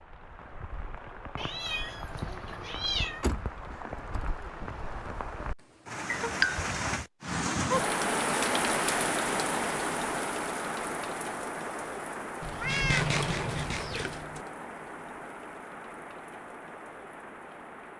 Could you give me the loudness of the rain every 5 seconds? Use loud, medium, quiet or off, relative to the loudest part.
quiet, loud, medium, quiet.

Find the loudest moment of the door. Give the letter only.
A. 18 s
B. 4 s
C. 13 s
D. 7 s
C.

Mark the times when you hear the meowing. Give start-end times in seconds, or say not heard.
1.4-3.2, 6.1-6.8, 12.6-14.2.